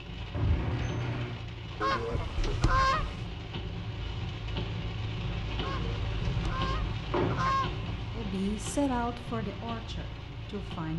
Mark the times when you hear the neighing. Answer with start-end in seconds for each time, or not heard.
not heard.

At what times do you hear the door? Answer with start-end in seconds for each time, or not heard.
0.3-1.4, 6.9-7.5.